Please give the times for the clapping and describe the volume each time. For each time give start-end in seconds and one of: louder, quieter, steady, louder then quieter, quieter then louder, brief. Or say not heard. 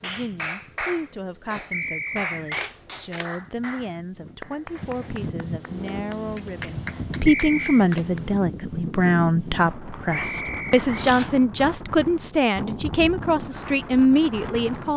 0.0-8.2 quieter then louder.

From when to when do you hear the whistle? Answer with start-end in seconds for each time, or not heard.
1.7-2.7, 7.2-7.8, 10.1-10.8.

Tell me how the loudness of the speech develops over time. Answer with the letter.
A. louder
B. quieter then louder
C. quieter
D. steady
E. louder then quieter
A.